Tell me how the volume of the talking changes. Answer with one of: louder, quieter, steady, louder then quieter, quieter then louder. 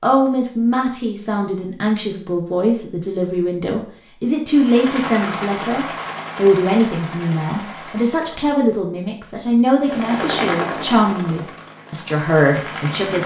steady.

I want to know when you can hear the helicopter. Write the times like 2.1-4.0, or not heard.
4.5-8.6, 9.8-13.2.